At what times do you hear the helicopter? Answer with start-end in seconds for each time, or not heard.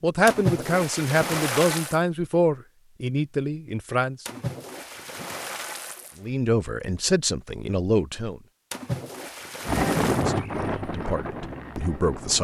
9.7-12.3.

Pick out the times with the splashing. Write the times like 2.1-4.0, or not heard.
0.2-1.9, 4.2-6.2, 8.7-10.2.